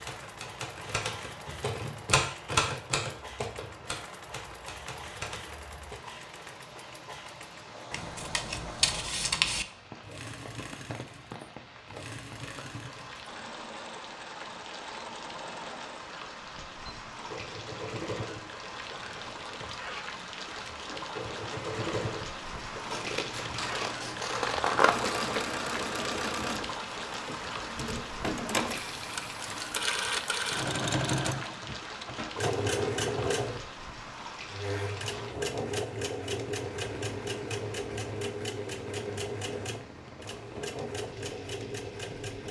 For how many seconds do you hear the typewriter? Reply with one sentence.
You can hear the typewriter for 6 seconds altogether.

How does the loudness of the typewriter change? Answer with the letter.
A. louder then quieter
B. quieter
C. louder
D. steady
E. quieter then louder
A.